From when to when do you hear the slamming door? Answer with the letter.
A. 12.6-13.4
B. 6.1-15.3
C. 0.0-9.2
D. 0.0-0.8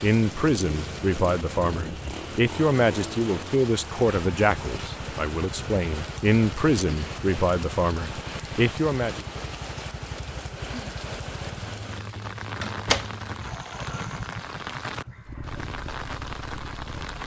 A.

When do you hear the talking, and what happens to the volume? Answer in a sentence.
The talking can be heard from 0.0 to 9.2 s, at a steady volume.